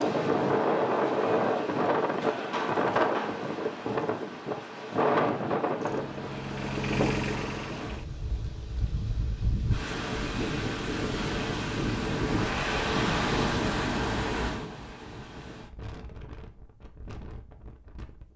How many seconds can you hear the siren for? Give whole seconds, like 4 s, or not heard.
not heard.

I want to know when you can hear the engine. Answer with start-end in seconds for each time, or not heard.
5.8-8.1.